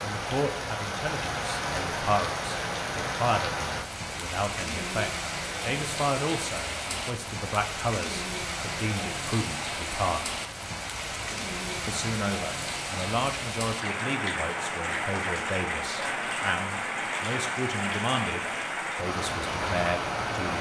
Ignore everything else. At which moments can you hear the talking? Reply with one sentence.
You can hear the talking from 0.0 to 10.3 s and from 11.8 to 20.5 s.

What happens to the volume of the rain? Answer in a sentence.
The volume of the rain stays about the same.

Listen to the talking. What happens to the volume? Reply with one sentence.
The loudness of the talking stays about the same.